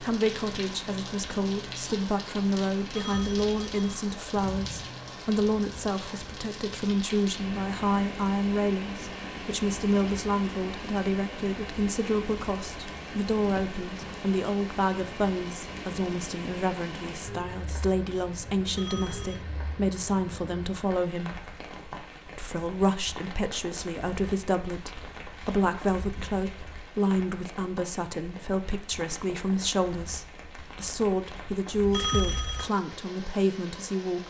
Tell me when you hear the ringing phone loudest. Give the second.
32 s.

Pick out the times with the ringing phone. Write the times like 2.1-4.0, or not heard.
2.9-3.8, 18.8-19.4, 31.9-32.7.